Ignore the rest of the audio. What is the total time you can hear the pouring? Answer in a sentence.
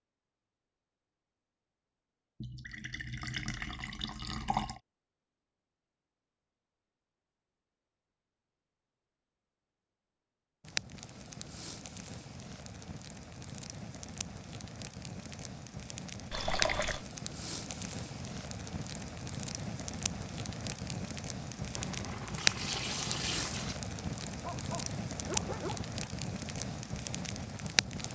You can hear the pouring for 5 seconds altogether.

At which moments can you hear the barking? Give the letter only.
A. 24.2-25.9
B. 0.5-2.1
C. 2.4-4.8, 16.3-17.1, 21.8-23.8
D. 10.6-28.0
A.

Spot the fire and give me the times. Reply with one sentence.
You can hear the fire from 10.6 to 28.0 s.